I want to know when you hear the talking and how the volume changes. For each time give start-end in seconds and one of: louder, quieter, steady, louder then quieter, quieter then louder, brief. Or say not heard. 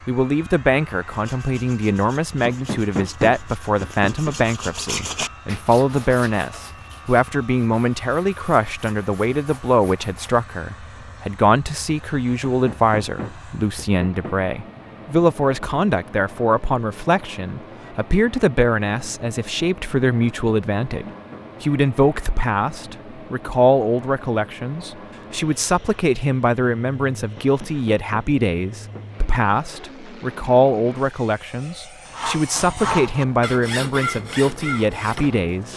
0.1-35.7 steady.